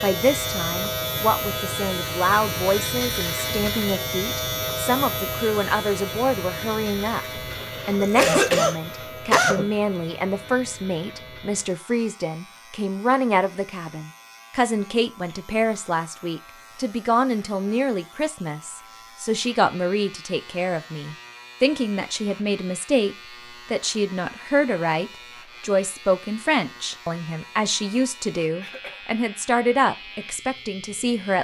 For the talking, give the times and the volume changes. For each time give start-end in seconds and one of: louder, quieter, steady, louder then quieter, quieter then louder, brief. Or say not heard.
0.0-31.4 steady.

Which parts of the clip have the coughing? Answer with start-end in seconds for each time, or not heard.
7.5-9.7, 28.6-29.1.